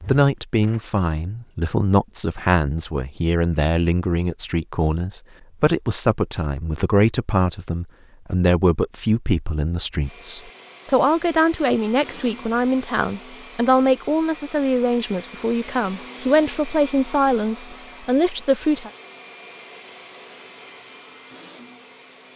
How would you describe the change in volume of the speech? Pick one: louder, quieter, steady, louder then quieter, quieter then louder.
steady.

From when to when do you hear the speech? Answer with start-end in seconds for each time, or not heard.
0.1-18.9.